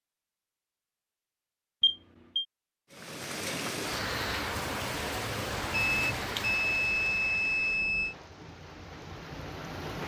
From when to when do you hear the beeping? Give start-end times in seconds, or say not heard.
1.8-2.5, 5.7-8.2.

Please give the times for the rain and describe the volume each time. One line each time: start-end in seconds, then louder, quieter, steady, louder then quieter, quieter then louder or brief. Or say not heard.
2.9-10.0 quieter.